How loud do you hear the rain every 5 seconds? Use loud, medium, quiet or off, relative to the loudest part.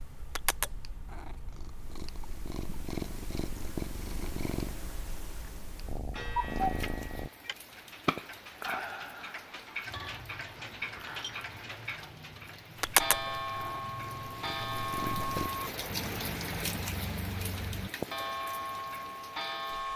off, medium, medium, loud.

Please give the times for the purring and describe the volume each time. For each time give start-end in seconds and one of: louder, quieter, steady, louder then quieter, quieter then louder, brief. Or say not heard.
0.0-7.3 steady
12.8-15.5 brief.